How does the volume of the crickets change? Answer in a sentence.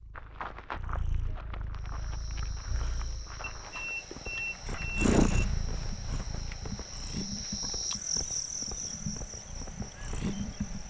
The volume of the crickets goes up, then down.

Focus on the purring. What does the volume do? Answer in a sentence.
The loudness of the purring goes up, then down.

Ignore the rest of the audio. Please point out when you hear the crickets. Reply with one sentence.
You can hear the crickets from 1.8 to 10.8 s.